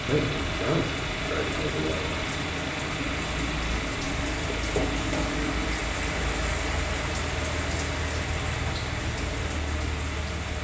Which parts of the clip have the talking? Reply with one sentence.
The talking can be heard from 0.0 to 2.1 s.